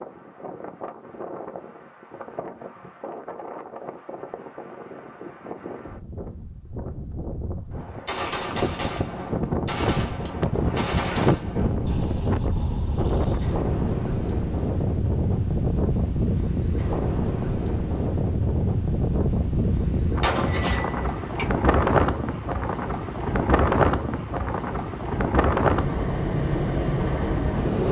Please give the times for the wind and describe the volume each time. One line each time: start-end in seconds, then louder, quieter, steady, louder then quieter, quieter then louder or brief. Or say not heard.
0.0-27.8 louder.